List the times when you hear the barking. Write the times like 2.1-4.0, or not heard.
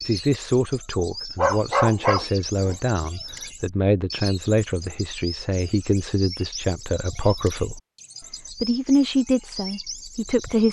1.4-2.8.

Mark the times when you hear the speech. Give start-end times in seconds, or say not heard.
0.1-7.8, 8.5-10.6.